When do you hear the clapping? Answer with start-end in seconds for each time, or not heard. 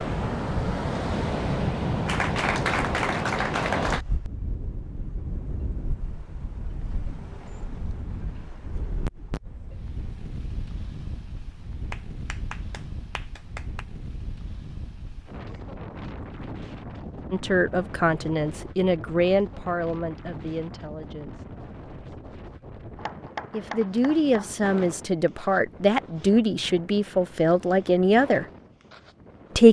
2.0-4.0, 11.9-13.8, 22.9-24.6.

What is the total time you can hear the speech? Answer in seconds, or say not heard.
9 s.